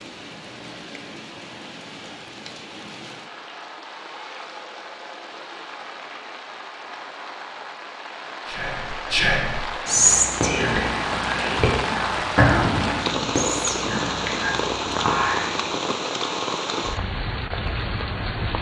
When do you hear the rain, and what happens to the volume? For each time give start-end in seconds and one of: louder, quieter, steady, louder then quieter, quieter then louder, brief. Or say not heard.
0.0-18.5 louder.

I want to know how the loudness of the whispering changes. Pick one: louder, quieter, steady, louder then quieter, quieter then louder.
quieter.